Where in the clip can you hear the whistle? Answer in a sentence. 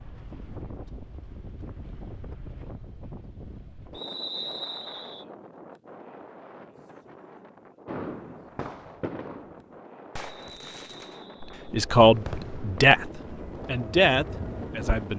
The whistle can be heard from 3.9 to 5.2 s and from 10.3 to 11.6 s.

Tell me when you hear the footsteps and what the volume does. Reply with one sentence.
You can't hear the footsteps here.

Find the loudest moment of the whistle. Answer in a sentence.
The loudest moment of the whistle is at 4 seconds.